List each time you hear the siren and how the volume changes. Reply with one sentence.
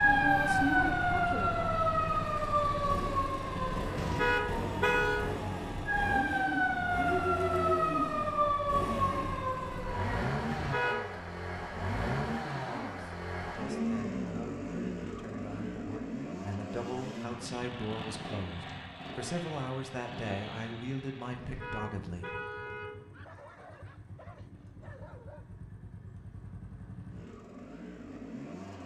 The siren can be heard from 0.0 to 10.2 s, getting quieter then louder.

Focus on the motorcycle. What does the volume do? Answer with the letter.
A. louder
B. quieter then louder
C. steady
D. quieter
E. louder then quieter
D.